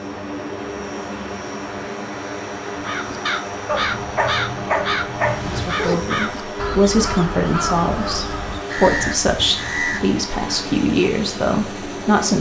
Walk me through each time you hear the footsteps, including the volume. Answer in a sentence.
You can't hear the footsteps here.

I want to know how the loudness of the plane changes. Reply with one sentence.
The loudness of the plane stays about the same.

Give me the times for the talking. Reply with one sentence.
The talking can be heard from 5.5 to 12.3 s.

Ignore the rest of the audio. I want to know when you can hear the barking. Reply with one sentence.
You can hear the barking from 3.6 to 5.6 s.